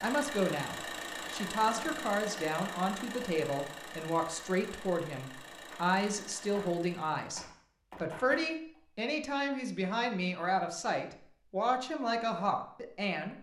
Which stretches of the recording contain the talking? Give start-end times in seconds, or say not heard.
0.0-13.3.